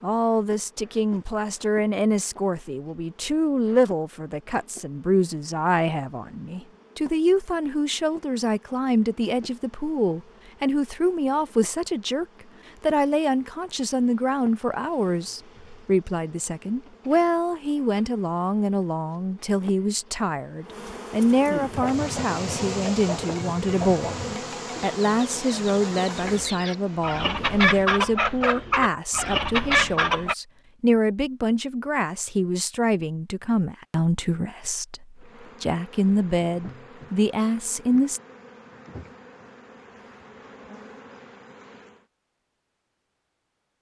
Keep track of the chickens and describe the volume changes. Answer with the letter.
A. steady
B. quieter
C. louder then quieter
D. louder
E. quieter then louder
D.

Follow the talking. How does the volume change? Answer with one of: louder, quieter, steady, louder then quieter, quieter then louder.
steady.